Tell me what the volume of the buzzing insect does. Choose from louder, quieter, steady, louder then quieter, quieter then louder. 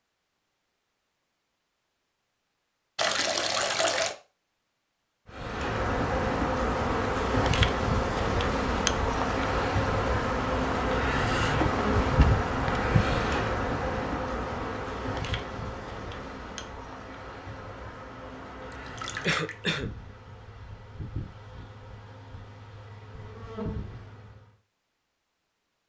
quieter.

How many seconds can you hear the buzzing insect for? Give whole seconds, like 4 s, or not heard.
19 s.